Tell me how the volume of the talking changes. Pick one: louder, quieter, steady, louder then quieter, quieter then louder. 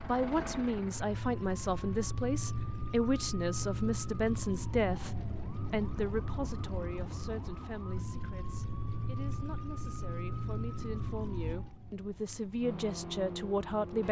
quieter then louder.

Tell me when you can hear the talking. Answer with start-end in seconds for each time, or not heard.
0.1-14.0.